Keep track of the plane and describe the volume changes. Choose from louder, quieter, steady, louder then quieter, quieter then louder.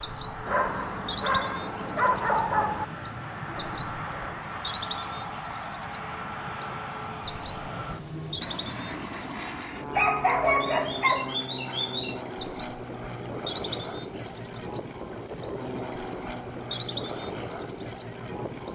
steady.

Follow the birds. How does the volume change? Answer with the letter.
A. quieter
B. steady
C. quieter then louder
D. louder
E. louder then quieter
B.